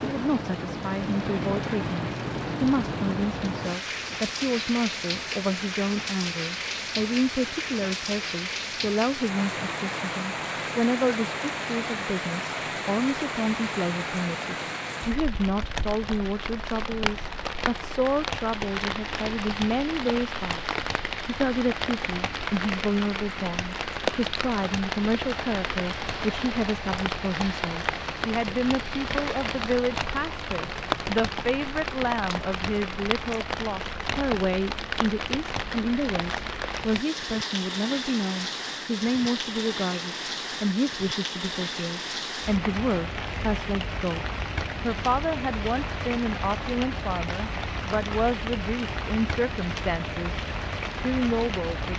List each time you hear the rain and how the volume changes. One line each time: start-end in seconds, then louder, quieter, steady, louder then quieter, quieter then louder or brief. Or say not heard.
0.0-51.9 steady.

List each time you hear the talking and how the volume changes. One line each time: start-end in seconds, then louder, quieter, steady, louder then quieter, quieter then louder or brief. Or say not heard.
0.0-51.9 steady.